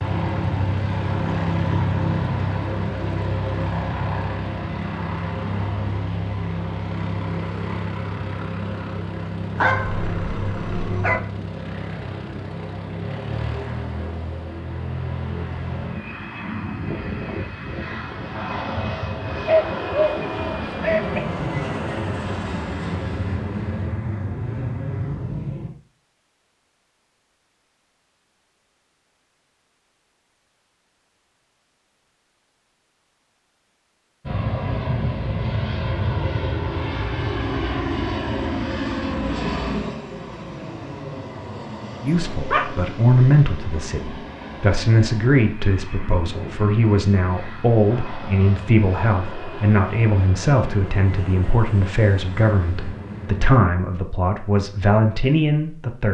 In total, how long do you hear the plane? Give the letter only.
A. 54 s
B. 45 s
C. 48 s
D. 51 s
B.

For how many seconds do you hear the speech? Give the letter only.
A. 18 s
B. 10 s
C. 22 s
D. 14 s
D.